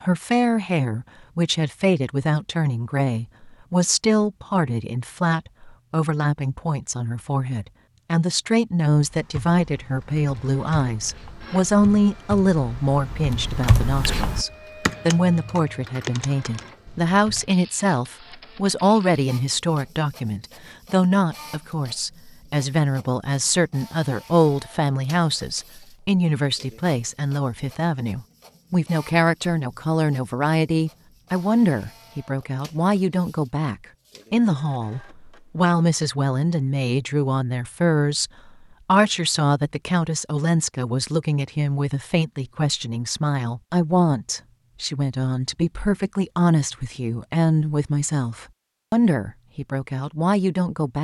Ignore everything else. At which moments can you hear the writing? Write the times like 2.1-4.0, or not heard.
not heard.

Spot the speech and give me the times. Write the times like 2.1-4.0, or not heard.
0.0-50.9.